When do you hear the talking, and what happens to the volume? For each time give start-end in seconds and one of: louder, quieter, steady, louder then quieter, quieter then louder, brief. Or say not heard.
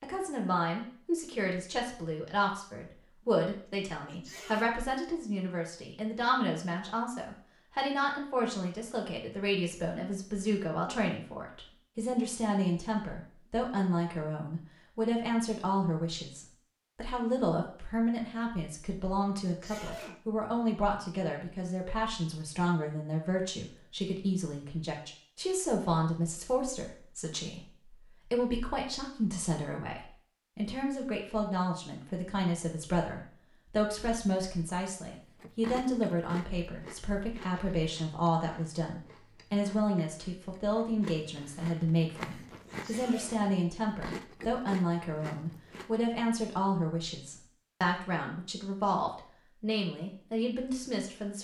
0.0-51.3 steady.